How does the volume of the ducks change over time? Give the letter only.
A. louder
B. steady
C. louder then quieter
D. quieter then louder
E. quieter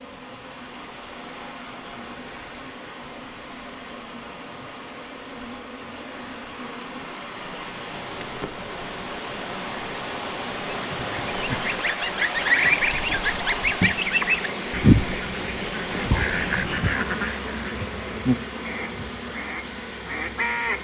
E.